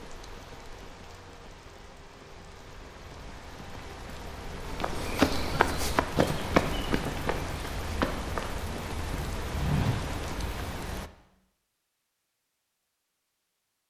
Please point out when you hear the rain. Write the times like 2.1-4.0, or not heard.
0.0-11.1.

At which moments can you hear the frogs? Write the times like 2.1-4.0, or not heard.
not heard.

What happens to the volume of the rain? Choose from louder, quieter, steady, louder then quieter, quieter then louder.
louder.